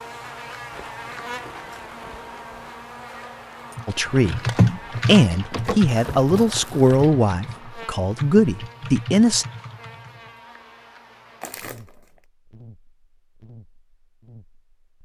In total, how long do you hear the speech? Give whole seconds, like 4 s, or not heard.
5 s.